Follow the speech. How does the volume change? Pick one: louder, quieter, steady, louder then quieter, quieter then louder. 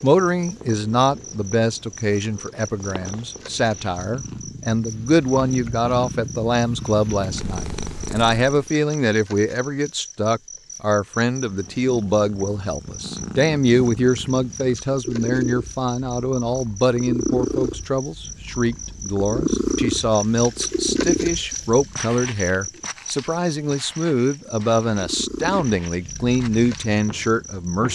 steady.